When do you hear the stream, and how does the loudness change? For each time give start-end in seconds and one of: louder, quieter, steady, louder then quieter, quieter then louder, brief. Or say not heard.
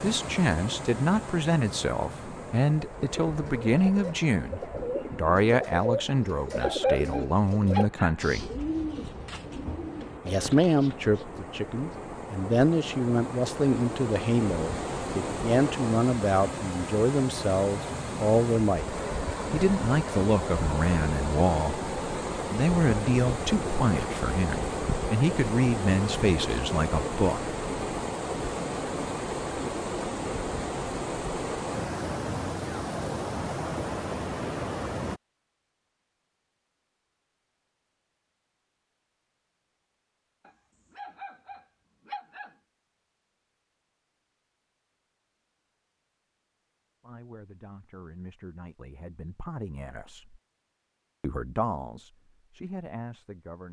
0.0-35.2 louder.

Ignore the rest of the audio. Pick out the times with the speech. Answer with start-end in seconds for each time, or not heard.
0.0-8.5, 10.2-27.6, 47.0-50.4, 51.2-53.6.